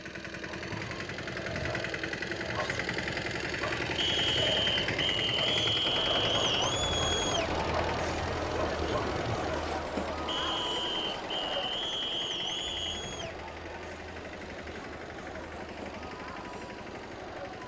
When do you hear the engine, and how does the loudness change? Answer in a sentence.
You can hear the engine from 0.0 to 17.6 s, getting quieter.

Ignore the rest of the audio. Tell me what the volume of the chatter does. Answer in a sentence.
The loudness of the chatter goes down.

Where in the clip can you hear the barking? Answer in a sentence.
The barking can be heard from 0.5 to 9.6 s.